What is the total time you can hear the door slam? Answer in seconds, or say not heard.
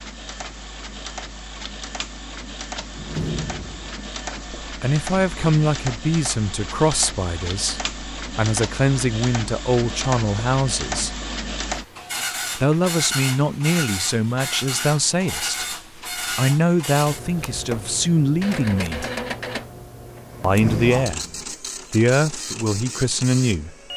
2 s.